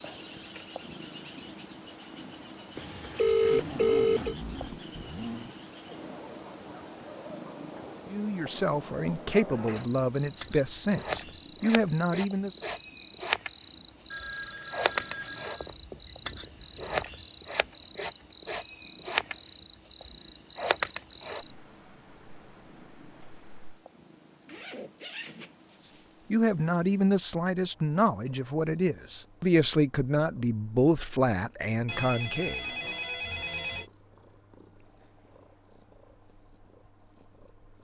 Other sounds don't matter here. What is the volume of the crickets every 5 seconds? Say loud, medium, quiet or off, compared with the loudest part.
medium, medium, loud, loud, loud, off, off, off.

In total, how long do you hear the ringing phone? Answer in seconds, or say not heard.
5 s.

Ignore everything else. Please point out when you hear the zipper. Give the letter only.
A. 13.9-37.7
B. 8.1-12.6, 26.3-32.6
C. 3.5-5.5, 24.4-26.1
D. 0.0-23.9
C.